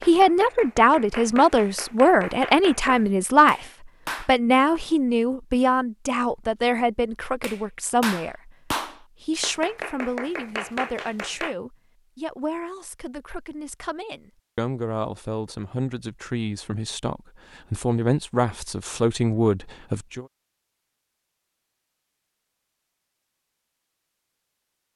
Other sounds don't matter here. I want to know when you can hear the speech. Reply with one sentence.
The speech can be heard from 0.1 to 20.2 s.